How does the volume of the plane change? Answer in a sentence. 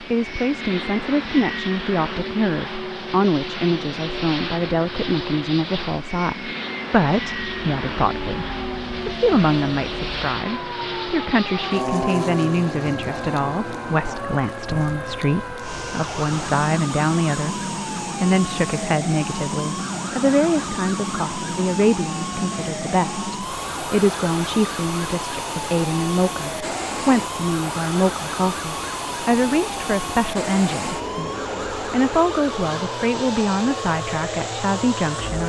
The volume of the plane stays about the same.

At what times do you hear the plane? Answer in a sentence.
The plane can be heard from 0.0 to 35.4 s.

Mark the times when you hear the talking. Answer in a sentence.
The talking can be heard from 0.0 to 8.4 s, from 9.1 to 17.6 s and from 18.2 to 35.4 s.